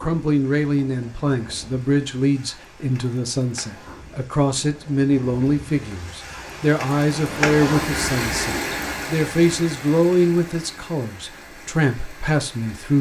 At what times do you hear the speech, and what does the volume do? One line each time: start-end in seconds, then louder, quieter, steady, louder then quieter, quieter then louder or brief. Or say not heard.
0.0-12.9 steady.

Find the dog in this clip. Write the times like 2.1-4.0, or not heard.
not heard.